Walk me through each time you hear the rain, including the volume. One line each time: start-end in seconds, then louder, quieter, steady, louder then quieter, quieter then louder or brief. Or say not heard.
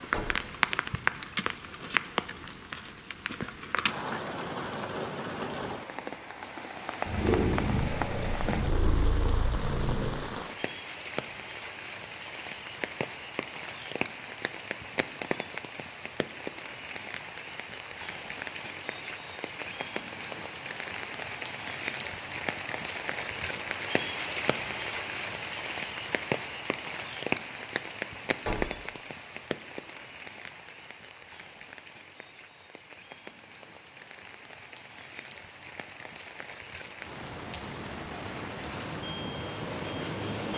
0.0-40.5 quieter.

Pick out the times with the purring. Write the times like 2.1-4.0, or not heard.
7.0-10.1.